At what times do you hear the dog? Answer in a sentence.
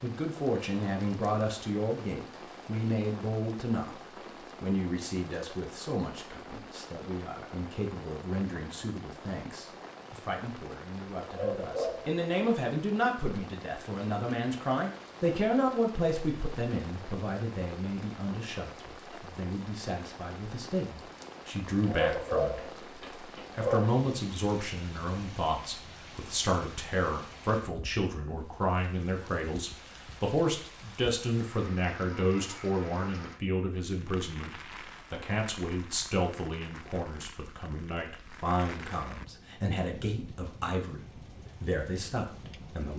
You can hear the dog from 11.2 to 12.6 s and from 21.8 to 23.9 s.